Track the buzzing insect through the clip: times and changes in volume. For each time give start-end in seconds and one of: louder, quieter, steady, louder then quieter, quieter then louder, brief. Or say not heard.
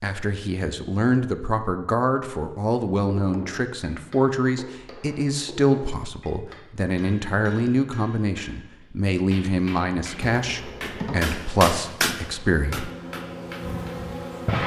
10.2-14.6 quieter then louder.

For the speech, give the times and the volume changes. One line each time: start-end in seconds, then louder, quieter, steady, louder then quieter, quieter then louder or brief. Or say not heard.
0.0-12.9 steady.